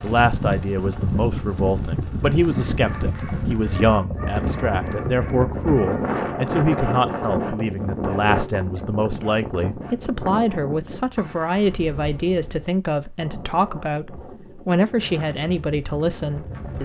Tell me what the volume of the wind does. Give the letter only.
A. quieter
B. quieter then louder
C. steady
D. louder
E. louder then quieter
A.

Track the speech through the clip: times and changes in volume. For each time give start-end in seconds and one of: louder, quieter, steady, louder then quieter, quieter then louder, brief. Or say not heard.
0.0-16.8 steady.